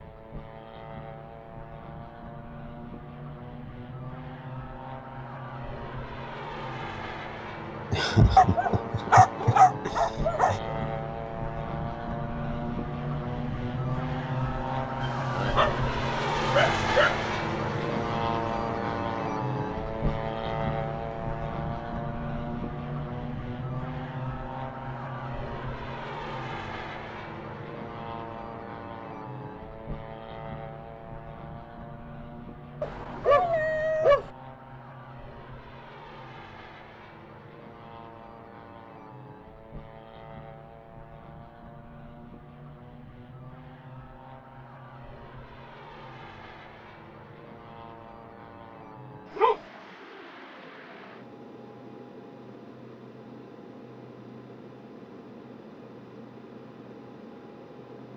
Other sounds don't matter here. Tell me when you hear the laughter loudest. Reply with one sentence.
The volume of the laughter peaks at 8 seconds.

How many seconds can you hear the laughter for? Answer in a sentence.
You can hear the laughter for 3 seconds altogether.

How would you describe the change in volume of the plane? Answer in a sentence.
The volume of the plane goes up, then down.